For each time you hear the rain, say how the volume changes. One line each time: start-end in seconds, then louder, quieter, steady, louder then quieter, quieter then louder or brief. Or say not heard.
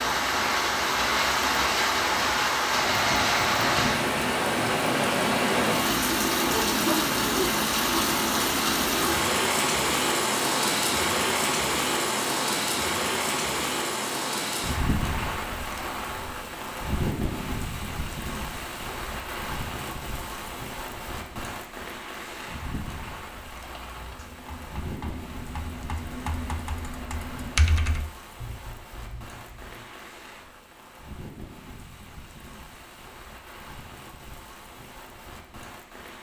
0.0-36.1 quieter.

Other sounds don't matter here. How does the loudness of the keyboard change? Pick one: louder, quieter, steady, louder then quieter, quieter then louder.
louder then quieter.